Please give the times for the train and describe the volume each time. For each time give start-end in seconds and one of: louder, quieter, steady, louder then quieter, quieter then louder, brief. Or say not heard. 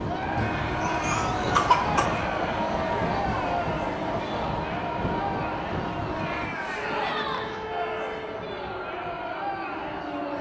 0.0-10.3 quieter.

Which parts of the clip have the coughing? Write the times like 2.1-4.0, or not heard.
0.3-2.1, 6.4-7.8.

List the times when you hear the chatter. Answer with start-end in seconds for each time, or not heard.
0.0-10.3.